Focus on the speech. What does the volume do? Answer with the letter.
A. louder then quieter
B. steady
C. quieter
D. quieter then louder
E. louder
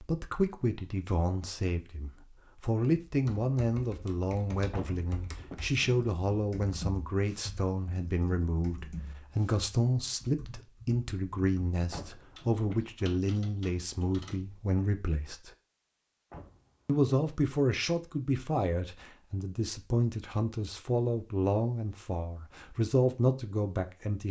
B.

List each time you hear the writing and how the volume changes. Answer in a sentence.
You can't hear the writing here.